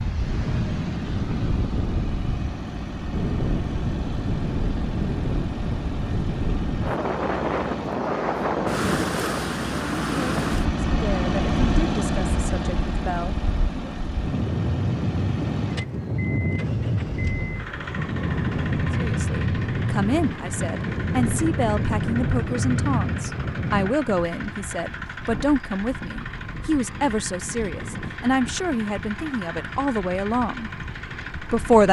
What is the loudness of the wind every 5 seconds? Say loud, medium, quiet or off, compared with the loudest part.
loud, loud, loud, loud, loud, off, off.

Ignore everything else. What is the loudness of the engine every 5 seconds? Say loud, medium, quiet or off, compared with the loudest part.
medium, medium, loud, medium, medium, medium, medium.